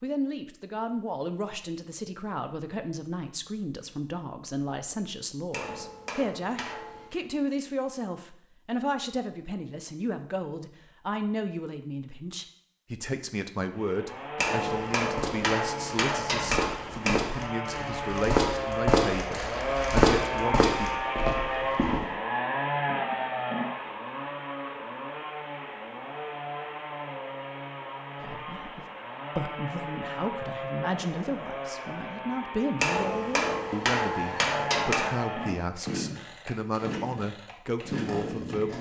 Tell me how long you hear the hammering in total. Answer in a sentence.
The hammering can be heard for 7 seconds in total.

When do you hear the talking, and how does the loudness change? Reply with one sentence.
You can hear the talking from 0.0 to 21.0 s, at a steady volume; and from 28.2 to 38.7 s, at a steady volume.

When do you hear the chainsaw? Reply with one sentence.
You can hear the chainsaw from 13.7 to 38.7 s.